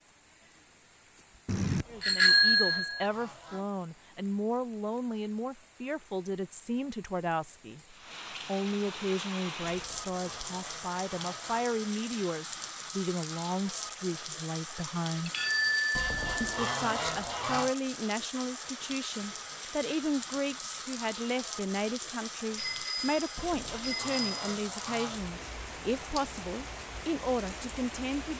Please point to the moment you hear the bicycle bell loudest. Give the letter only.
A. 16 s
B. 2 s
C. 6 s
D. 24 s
B.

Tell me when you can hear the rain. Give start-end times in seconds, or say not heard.
0.0-28.3.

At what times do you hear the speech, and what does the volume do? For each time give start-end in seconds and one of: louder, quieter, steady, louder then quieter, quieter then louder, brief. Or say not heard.
1.9-15.3 steady
16.4-28.3 steady.